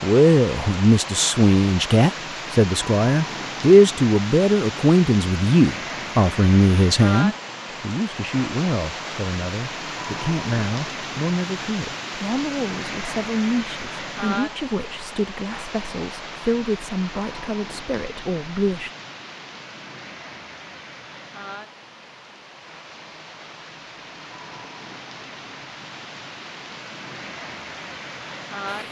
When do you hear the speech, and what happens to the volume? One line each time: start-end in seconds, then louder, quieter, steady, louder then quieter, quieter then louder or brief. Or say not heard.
0.0-18.9 quieter.